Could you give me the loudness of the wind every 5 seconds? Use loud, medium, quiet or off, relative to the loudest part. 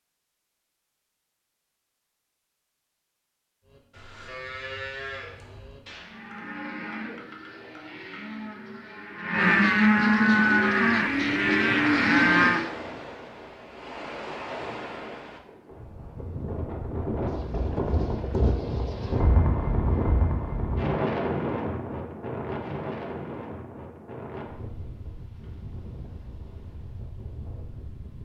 off, off, medium, loud, loud, quiet.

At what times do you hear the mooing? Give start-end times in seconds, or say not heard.
3.6-12.7.